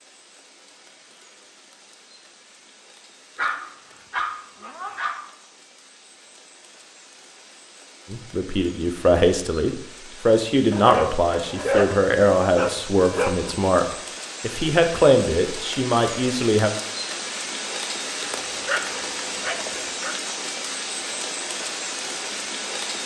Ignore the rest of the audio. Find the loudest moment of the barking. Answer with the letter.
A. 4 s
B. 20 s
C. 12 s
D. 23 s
C.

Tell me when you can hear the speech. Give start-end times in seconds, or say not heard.
8.1-16.7.